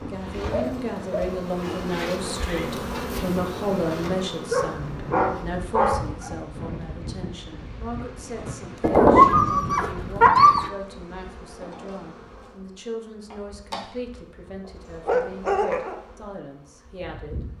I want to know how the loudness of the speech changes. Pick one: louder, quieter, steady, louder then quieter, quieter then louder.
quieter.